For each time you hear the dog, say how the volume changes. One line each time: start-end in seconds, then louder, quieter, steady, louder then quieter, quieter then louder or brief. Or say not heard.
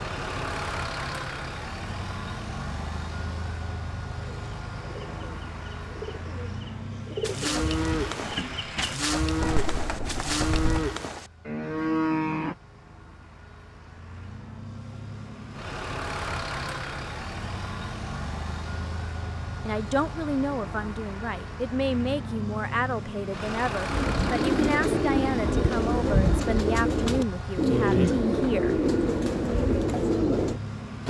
not heard.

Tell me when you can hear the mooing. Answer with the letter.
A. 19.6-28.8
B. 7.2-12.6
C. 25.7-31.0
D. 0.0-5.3
B.